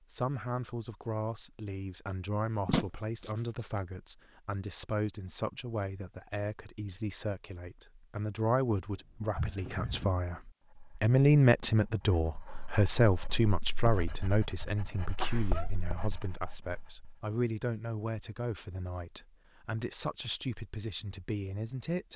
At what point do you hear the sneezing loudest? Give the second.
3 s.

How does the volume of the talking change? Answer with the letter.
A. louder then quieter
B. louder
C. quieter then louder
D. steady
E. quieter
A.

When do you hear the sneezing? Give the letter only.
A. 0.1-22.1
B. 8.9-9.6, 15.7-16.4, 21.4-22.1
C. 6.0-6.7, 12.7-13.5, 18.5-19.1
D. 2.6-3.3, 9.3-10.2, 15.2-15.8
D.